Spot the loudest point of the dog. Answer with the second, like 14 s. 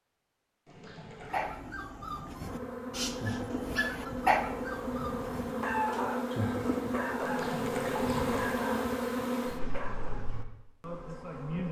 4 s.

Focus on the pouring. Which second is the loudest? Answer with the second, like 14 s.
8 s.